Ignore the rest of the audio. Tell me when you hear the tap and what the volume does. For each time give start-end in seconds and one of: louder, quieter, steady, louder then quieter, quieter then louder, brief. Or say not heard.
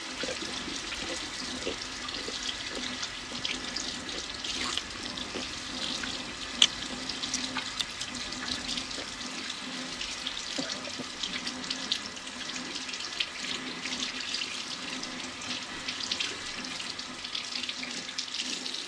0.0-18.8 steady.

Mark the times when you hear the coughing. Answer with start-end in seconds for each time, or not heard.
10.6-11.2.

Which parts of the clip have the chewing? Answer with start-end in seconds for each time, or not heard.
0.1-9.2.